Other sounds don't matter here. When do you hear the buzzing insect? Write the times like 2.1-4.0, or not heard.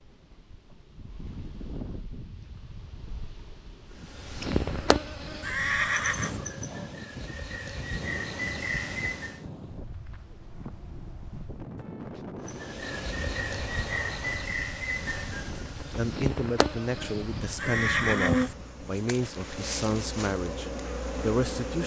4.0-9.4, 12.4-21.8.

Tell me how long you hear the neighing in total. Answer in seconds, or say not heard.
2 s.